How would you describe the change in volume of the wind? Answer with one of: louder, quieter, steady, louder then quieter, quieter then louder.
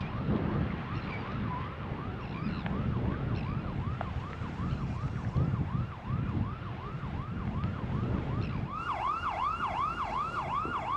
quieter.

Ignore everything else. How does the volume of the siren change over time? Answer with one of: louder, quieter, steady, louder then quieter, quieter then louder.
louder.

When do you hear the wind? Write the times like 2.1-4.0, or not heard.
0.0-10.9.